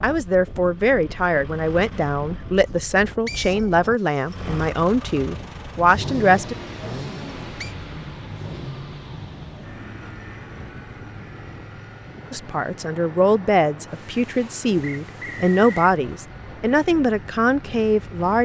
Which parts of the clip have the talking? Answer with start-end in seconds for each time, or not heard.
0.0-6.5, 12.3-18.4.